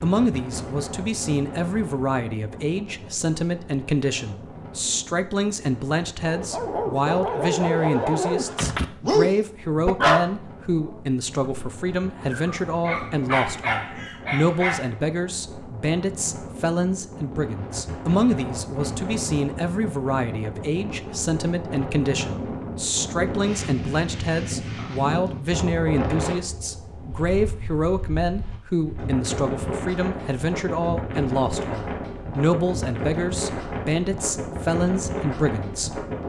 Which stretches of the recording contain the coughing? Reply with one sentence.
You can't hear the coughing here.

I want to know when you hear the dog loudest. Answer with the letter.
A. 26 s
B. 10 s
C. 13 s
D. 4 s
B.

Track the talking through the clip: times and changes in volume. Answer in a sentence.
You can hear the talking from 0.0 to 36.0 s, at a steady volume.